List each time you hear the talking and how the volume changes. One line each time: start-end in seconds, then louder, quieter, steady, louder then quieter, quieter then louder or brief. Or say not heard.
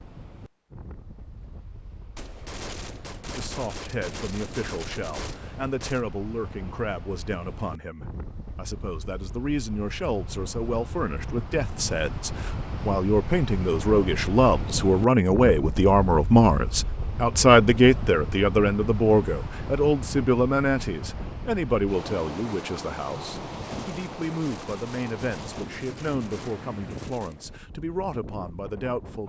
3.4-29.2 louder then quieter.